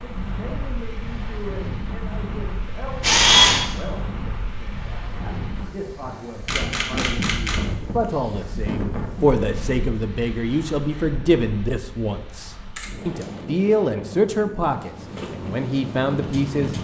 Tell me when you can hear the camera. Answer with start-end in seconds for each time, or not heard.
3.0-3.6, 6.5-7.6, 12.8-13.2.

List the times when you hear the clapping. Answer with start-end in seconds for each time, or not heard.
not heard.